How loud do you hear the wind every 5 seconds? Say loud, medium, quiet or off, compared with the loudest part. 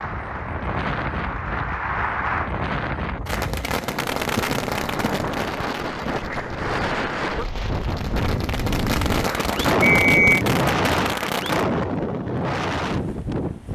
medium, loud, loud.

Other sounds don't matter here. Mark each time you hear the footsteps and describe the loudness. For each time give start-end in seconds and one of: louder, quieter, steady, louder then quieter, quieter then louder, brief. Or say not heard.
not heard.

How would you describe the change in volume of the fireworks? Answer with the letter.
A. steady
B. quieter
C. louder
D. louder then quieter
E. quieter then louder
E.